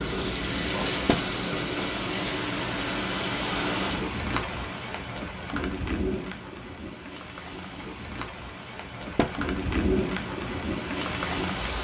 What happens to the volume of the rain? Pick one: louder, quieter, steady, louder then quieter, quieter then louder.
quieter then louder.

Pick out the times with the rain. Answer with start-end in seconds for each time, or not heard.
0.0-11.8.